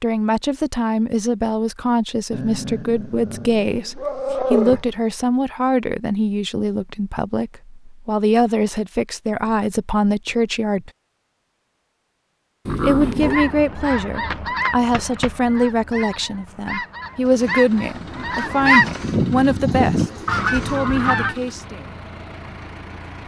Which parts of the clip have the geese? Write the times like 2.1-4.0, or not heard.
13.2-21.4.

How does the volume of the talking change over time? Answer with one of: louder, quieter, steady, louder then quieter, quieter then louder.
steady.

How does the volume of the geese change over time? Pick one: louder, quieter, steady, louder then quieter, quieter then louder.
quieter then louder.